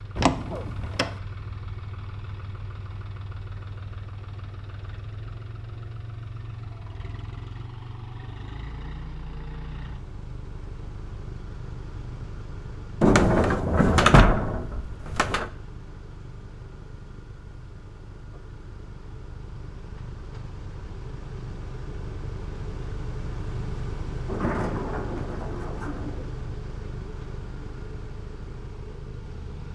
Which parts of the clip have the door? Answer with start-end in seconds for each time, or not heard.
0.1-1.1, 13.0-15.4, 24.2-26.3.